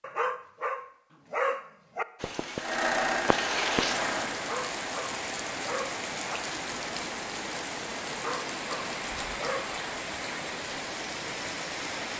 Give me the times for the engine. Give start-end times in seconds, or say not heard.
2.5-4.3.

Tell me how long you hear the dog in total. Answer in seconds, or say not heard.
6 s.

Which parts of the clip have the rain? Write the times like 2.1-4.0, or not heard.
2.1-12.1.